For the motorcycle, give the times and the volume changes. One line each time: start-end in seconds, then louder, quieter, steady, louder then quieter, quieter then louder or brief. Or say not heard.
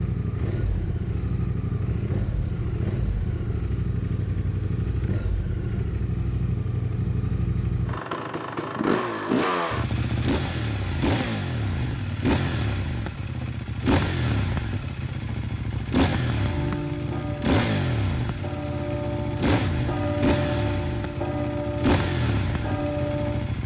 0.0-23.6 steady.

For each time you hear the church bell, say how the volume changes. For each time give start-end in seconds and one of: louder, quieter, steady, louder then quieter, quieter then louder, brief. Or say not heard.
16.4-23.6 steady.